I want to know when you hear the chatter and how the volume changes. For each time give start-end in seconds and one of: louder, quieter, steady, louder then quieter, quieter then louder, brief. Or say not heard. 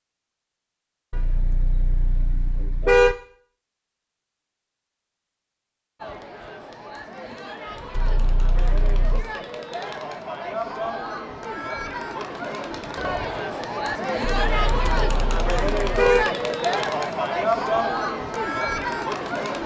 6.0-19.6 louder.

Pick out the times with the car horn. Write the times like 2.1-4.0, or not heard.
1.1-3.1, 7.9-9.2, 14.2-16.2.